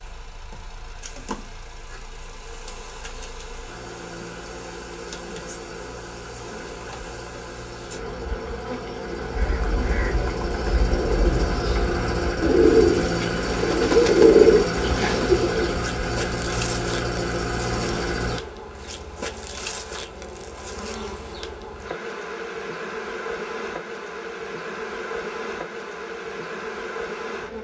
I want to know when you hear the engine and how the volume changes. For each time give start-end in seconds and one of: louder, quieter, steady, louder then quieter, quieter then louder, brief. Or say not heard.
0.0-18.4 louder.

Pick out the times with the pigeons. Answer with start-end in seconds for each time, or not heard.
9.2-15.7.